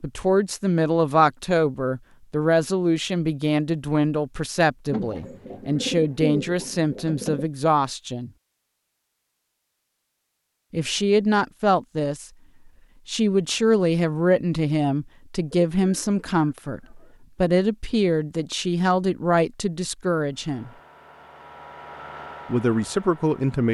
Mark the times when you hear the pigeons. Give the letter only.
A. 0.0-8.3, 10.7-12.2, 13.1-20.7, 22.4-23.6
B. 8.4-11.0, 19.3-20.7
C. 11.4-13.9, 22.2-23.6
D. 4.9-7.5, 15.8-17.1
D.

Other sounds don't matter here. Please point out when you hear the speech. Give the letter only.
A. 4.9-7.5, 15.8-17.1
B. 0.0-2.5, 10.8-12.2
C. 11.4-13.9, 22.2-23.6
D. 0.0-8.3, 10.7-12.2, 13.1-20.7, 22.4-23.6
D.